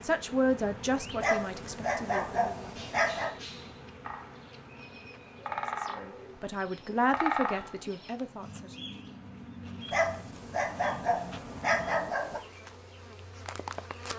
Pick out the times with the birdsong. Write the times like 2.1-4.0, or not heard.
2.6-14.1.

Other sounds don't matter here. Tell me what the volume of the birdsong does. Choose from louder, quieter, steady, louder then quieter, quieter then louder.
louder then quieter.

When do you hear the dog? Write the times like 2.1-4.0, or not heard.
1.2-3.4, 9.9-12.4.